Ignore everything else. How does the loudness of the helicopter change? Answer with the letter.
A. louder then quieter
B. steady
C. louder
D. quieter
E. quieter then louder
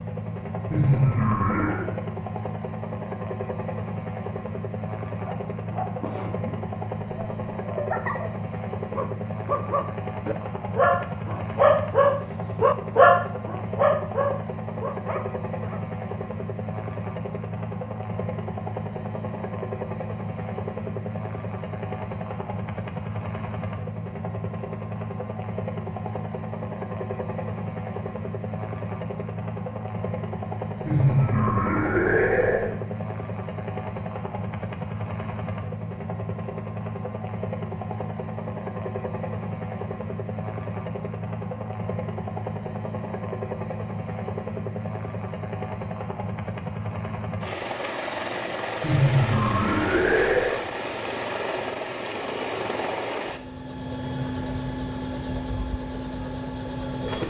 B.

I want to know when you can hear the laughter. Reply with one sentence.
The laughter can be heard from 0.7 to 1.9 s, from 30.9 to 32.7 s and from 48.8 to 50.6 s.